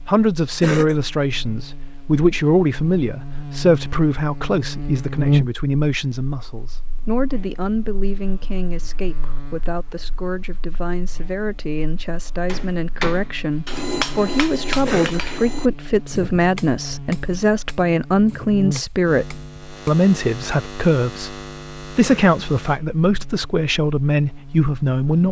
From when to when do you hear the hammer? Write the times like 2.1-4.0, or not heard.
12.4-20.0.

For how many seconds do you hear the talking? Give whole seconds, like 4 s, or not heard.
25 s.